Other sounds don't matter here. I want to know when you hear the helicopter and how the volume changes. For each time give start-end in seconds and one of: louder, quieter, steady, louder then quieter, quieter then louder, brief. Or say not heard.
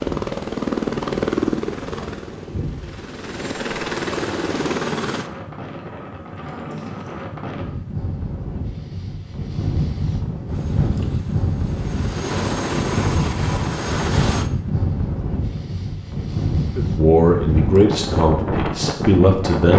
0.0-5.3 quieter then louder
10.4-14.5 louder.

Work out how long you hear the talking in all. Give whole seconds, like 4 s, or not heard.
3 s.